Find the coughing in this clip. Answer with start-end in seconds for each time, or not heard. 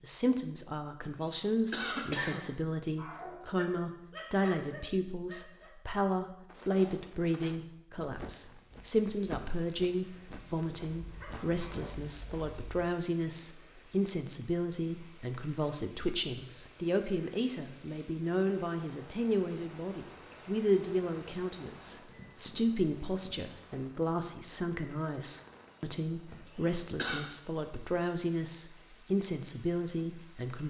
1.0-2.5, 26.3-27.2.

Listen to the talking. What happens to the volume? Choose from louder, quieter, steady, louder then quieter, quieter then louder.
steady.